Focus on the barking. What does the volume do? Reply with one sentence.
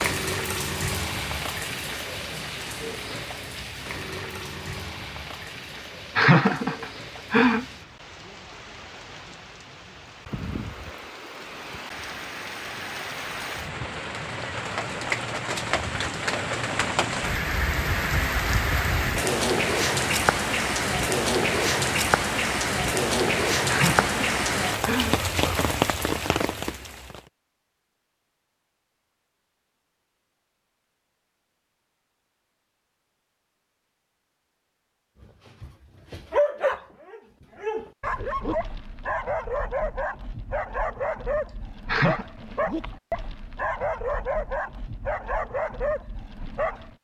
The volume of the barking stays about the same.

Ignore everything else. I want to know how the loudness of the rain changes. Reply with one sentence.
The volume of the rain goes down, then up.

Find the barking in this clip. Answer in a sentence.
You can hear the barking from 35.2 to 46.9 s.